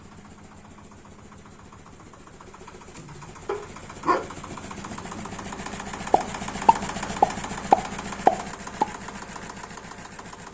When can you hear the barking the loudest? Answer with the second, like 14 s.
4 s.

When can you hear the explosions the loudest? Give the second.
8 s.